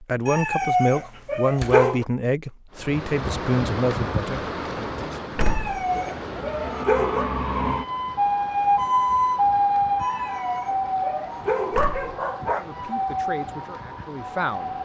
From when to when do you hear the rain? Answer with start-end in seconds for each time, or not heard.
2.7-14.8.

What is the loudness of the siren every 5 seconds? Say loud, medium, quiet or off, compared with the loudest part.
off, loud, medium.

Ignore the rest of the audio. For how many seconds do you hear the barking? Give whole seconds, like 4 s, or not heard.
6 s.